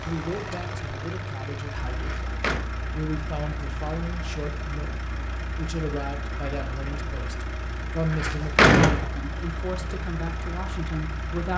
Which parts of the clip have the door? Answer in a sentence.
You can hear the door from 1.9 to 2.6 s and from 8.1 to 9.1 s.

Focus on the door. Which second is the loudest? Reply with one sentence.
The volume of the door peaks at 9 seconds.